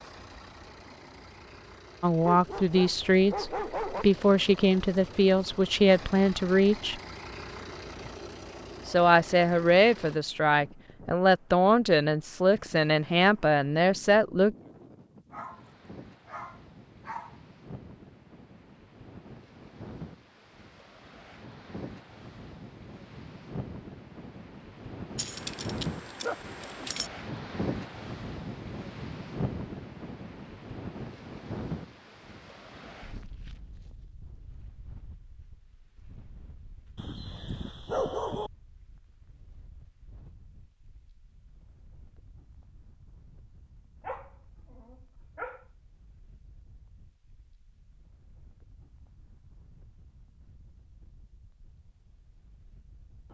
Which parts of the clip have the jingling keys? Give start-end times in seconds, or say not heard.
25.1-27.1.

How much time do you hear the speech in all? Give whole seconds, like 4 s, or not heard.
11 s.